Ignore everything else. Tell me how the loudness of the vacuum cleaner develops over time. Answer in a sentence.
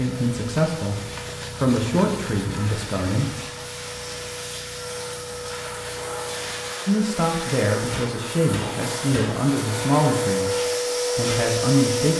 The volume of the vacuum cleaner goes up.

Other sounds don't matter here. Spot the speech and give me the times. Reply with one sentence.
The speech can be heard from 0.0 to 3.4 s, from 6.8 to 10.6 s and from 11.2 to 12.1 s.